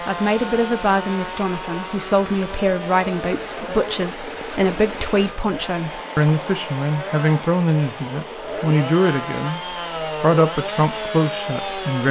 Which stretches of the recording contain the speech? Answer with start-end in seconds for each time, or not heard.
0.1-9.6, 10.2-12.0.